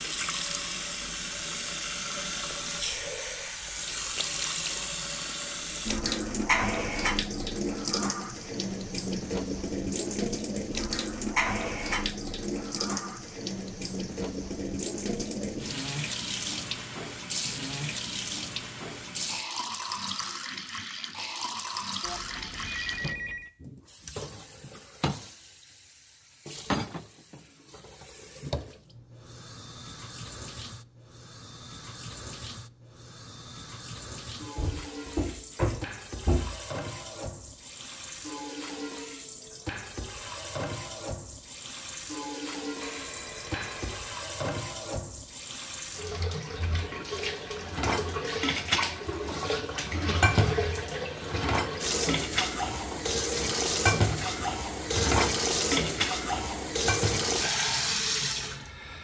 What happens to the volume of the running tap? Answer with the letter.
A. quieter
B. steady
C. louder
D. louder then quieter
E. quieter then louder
E.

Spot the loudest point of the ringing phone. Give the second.
23 s.